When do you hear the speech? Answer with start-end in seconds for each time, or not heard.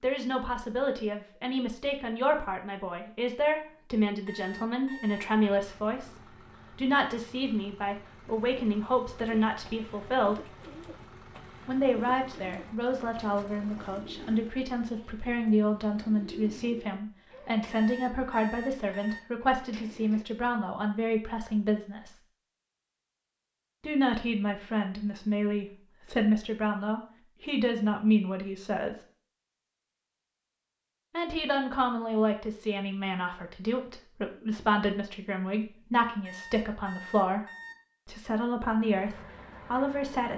0.0-10.5, 11.7-22.2, 23.8-29.0, 31.1-37.5, 38.0-40.3.